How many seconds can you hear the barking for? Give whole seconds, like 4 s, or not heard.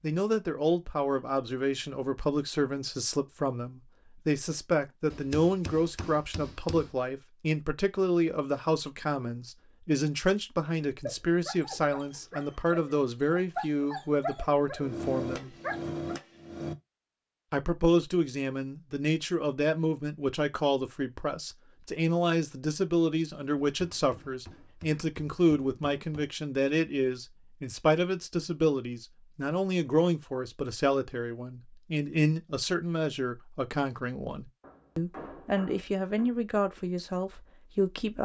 5 s.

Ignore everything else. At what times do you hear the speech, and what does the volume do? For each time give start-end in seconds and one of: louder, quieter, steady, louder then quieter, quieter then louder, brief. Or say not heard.
0.0-15.6 steady
17.5-38.2 steady.